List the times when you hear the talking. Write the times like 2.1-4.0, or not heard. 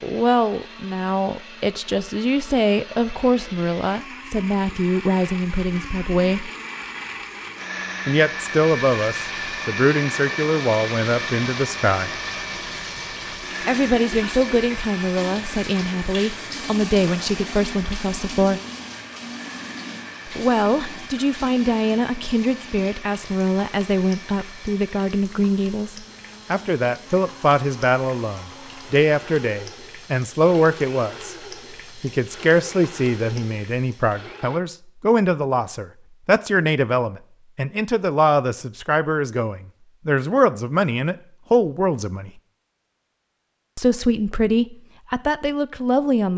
0.0-6.5, 8.1-12.1, 13.7-18.6, 20.2-31.4, 31.9-42.3, 43.8-46.3.